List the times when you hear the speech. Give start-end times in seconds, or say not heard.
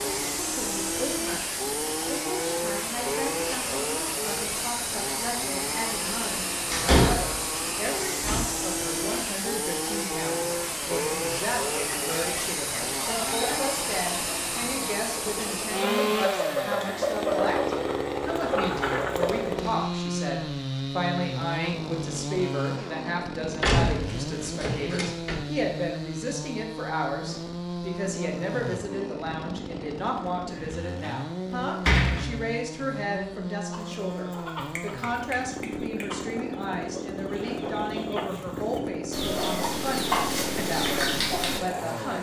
0.0-42.1.